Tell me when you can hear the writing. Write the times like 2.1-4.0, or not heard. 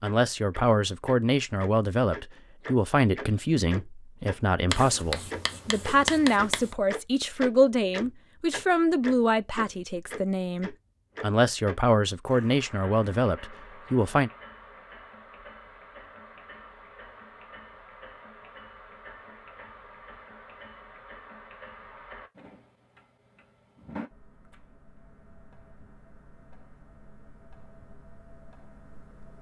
4.7-6.7.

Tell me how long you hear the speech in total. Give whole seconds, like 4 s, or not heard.
14 s.